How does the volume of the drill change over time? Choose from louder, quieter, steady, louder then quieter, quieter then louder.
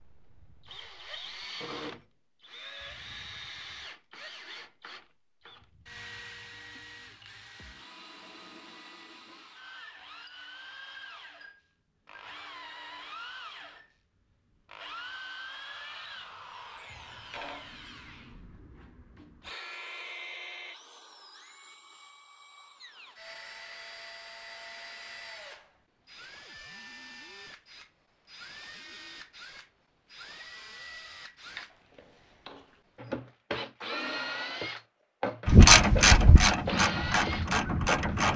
louder.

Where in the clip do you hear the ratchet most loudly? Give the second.
36 s.